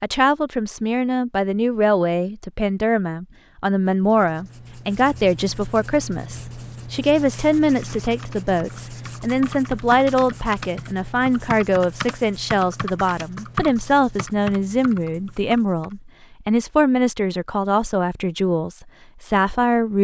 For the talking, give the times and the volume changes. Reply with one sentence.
You can hear the talking from 0.0 to 20.0 s, at a steady volume.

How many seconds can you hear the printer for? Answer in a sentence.
The printer can't be heard in this clip.